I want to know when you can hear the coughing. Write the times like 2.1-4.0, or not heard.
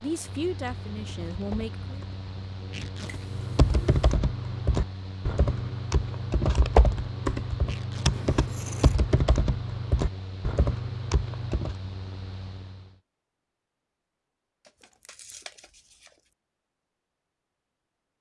not heard.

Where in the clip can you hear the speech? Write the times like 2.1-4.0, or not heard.
0.0-2.0.